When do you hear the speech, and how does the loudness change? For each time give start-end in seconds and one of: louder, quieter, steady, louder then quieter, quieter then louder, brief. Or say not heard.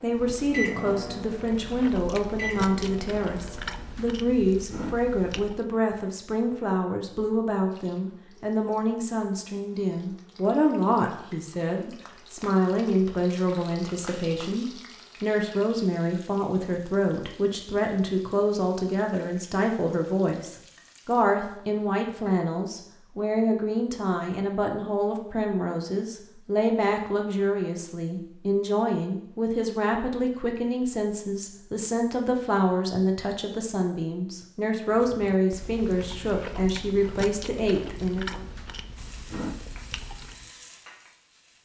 0.0-38.5 steady.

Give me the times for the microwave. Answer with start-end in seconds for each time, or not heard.
0.0-4.0.